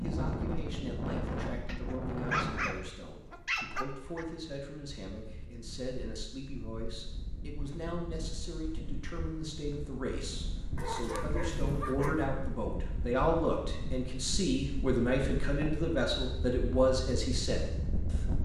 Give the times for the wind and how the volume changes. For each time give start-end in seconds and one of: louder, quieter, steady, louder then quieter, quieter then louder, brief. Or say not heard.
0.0-18.3 quieter then louder.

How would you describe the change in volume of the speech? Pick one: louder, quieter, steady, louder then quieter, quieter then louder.
louder.